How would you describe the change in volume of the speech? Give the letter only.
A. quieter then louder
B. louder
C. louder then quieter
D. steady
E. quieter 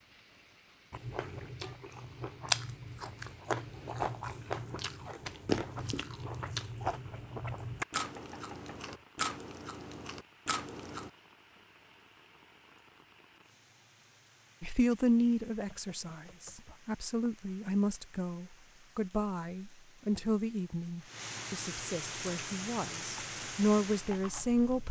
A.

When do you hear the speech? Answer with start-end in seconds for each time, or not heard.
14.6-24.8.